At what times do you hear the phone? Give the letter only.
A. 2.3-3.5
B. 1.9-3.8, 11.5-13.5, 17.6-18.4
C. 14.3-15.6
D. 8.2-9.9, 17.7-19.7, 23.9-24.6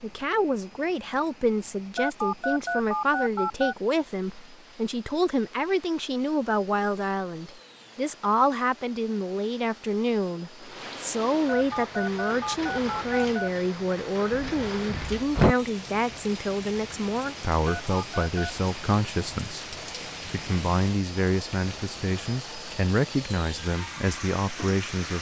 B.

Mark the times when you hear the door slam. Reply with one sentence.
The door slam can be heard from 14.3 to 15.6 s.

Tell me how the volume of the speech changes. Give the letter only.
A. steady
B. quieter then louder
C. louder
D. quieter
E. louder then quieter
A.